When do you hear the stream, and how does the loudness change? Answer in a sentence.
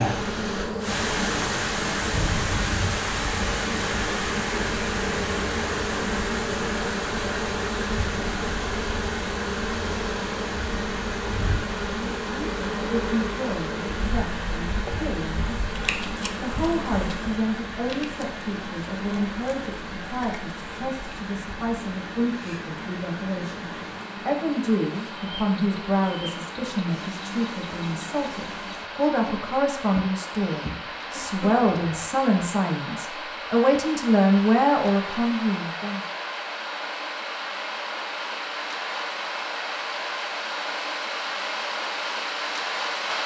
You can hear the stream from 0.0 to 43.2 s, getting quieter then louder.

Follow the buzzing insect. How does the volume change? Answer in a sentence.
The volume of the buzzing insect goes down.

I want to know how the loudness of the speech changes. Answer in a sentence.
The loudness of the speech goes up.